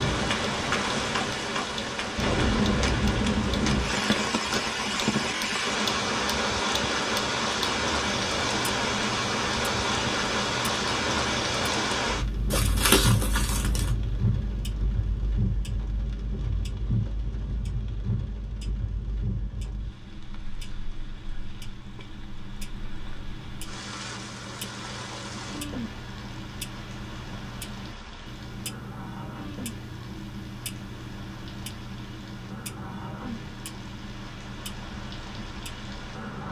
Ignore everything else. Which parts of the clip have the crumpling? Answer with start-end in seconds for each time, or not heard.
12.5-13.9.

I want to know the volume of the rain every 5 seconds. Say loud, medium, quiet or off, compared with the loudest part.
loud, loud, loud, medium, quiet, quiet, quiet, quiet.